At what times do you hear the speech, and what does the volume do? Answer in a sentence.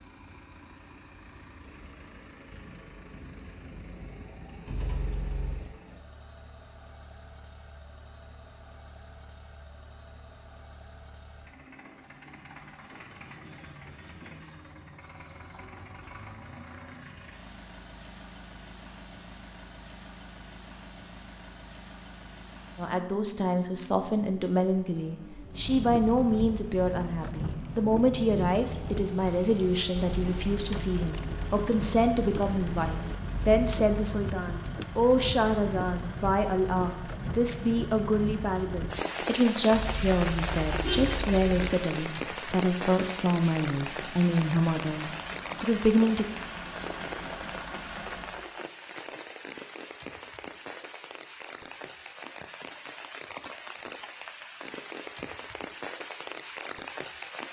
The speech can be heard from 22.8 to 46.2 s, at a steady volume.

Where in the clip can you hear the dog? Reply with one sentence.
The dog can't be heard in this clip.